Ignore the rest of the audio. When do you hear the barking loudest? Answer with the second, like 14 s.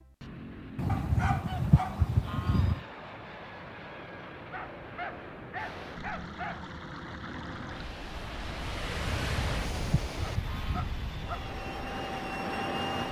1 s.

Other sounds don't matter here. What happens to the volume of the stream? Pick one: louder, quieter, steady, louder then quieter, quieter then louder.
louder then quieter.